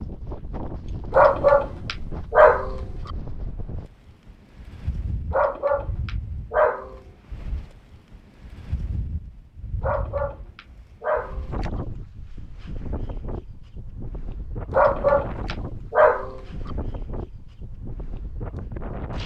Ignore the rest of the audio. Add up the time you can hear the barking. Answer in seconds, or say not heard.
7 s.